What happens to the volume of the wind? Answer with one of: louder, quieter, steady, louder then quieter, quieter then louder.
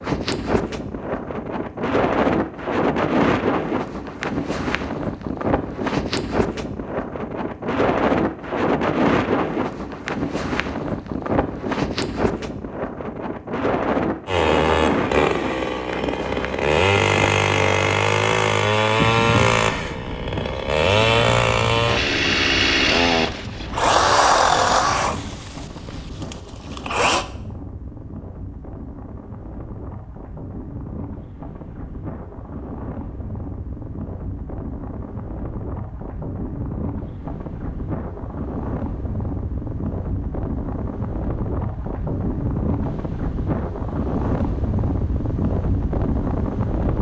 quieter then louder.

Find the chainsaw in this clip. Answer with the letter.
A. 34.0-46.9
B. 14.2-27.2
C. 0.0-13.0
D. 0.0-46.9
B.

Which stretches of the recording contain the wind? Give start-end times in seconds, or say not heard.
0.0-46.9.